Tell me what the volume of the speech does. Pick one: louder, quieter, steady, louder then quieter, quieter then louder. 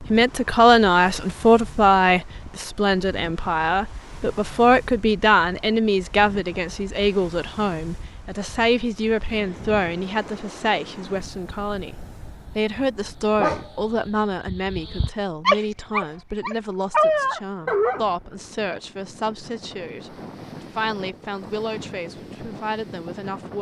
quieter.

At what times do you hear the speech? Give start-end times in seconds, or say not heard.
0.1-11.9, 12.6-23.5.